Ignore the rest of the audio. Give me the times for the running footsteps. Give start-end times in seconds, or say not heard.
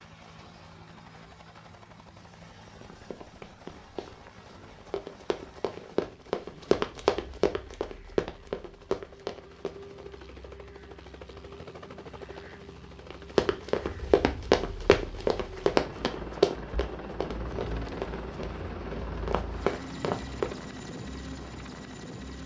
2.6-10.2, 13.1-20.6.